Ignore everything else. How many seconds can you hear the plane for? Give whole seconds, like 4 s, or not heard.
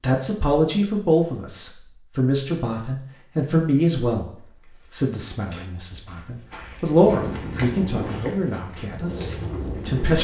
3 s.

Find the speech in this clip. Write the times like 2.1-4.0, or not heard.
0.0-10.2.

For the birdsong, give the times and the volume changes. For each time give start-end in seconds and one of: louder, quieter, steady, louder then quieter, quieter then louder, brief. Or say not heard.
not heard.